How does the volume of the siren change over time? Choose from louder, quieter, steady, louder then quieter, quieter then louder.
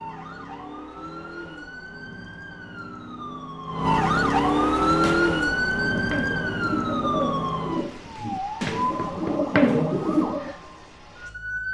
louder then quieter.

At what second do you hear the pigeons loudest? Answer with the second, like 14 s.
10 s.